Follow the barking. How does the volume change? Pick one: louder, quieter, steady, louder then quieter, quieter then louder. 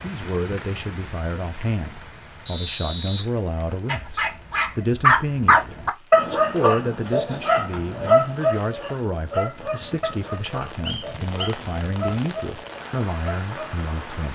quieter.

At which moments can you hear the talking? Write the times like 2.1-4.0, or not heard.
0.0-5.8, 6.5-14.2.